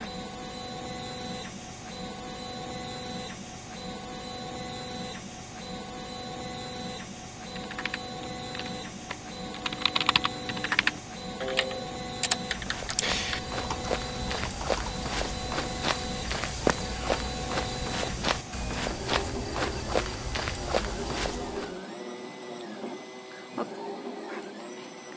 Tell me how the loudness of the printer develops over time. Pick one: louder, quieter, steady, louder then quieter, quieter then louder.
steady.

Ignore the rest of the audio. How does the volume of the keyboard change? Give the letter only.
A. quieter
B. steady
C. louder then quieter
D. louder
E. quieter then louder
C.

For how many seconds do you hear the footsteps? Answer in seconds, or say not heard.
9 s.